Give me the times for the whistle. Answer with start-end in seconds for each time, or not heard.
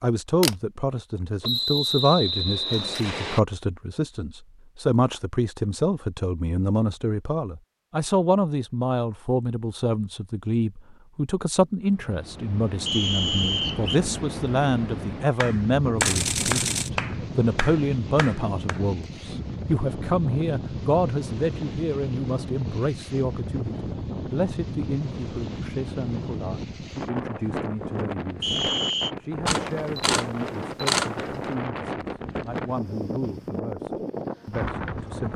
1.4-3.4, 12.8-14.0, 28.4-29.1.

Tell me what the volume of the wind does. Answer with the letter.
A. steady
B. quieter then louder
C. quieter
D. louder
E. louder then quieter
A.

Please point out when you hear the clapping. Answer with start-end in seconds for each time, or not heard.
15.3-18.8.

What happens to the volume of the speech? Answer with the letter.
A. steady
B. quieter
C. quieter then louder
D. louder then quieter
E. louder
B.